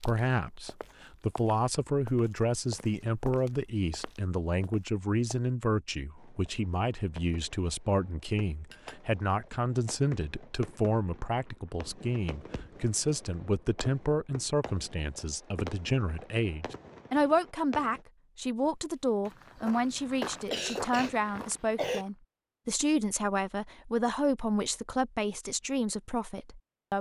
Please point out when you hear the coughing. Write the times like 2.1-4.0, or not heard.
20.5-22.1.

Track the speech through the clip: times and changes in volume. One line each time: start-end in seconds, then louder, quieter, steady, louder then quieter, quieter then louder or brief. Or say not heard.
0.0-26.9 steady.